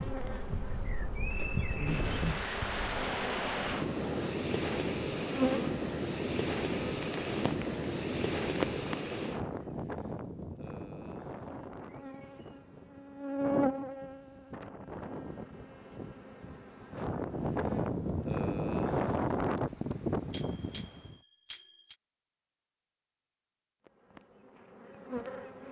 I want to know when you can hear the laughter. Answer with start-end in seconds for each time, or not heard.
not heard.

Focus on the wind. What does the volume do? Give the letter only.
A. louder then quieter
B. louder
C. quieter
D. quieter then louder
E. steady
D.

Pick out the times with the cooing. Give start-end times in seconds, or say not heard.
not heard.